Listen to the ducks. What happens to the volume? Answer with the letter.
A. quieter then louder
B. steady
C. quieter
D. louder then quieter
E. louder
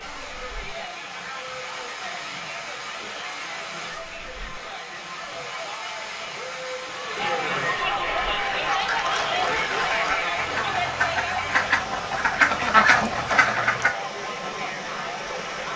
E.